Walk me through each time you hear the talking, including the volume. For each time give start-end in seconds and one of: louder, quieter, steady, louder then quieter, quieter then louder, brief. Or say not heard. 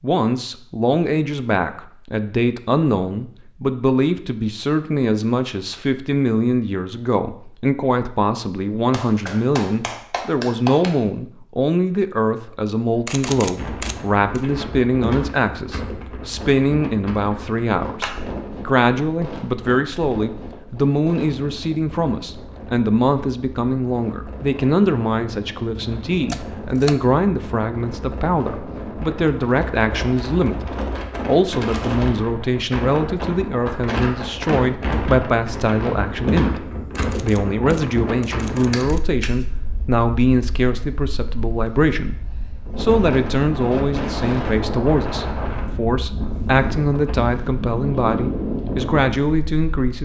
0.0-49.9 steady.